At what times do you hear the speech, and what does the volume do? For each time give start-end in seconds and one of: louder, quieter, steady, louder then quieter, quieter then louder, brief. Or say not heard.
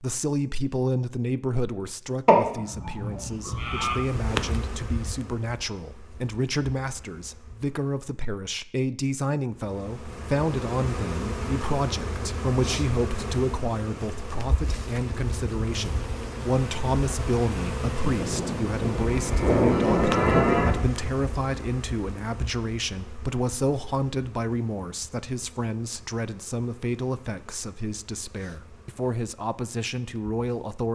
0.0-30.9 steady.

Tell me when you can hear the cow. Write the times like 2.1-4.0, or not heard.
2.2-4.0, 18.0-20.8.